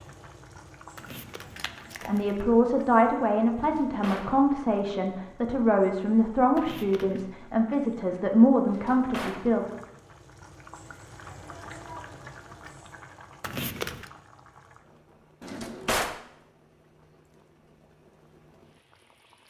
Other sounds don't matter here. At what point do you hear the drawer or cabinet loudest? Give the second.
16 s.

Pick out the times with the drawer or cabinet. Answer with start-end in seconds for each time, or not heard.
3.5-4.3, 8.7-9.4, 15.4-16.2.